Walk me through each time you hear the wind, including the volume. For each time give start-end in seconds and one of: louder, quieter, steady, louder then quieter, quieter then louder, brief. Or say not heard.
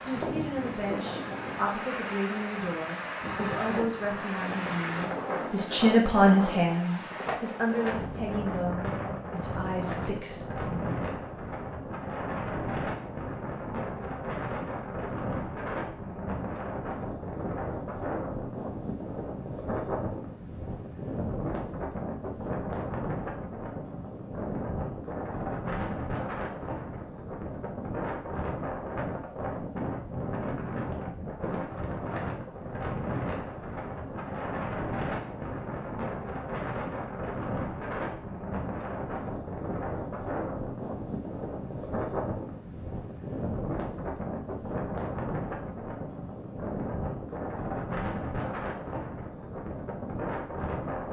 0.0-51.0 steady.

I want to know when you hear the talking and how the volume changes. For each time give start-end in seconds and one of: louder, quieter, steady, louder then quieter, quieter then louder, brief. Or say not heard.
0.1-10.9 louder then quieter.